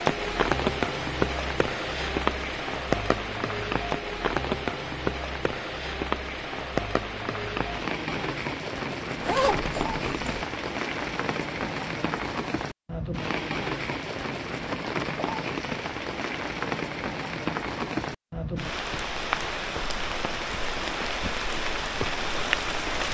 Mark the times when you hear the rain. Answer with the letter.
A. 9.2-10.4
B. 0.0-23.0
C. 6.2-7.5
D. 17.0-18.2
B.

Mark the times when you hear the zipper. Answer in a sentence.
The zipper can be heard from 9.2 to 10.4 s.